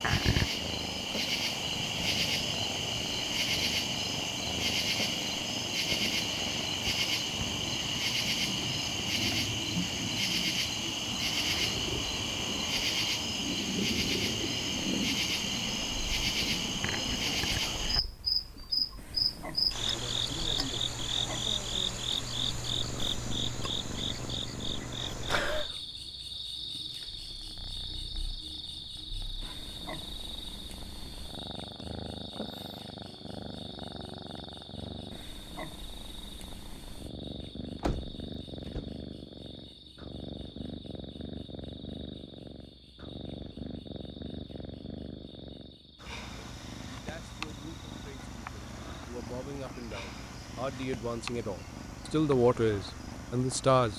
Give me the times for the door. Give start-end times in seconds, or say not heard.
37.8-39.0.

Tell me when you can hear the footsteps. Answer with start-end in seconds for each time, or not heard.
not heard.